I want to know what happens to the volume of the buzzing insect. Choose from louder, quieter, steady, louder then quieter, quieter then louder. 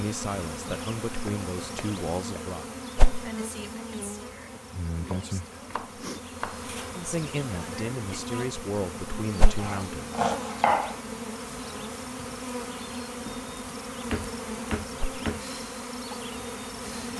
steady.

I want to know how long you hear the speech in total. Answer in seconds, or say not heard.
6 s.